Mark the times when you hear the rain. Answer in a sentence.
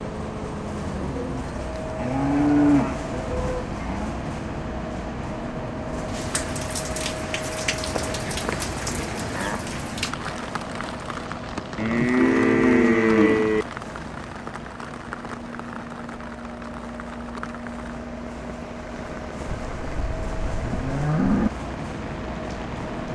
You can hear the rain from 6.0 to 23.1 s.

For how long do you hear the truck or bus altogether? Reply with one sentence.
The truck or bus can be heard for 23 seconds in total.